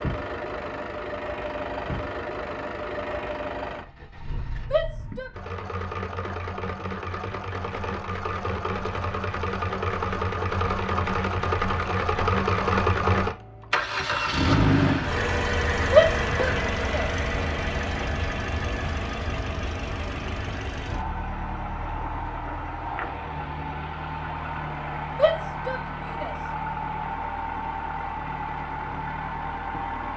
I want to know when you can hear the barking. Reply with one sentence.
The barking can't be heard in this clip.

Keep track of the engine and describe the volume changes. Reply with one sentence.
The loudness of the engine goes up, then down.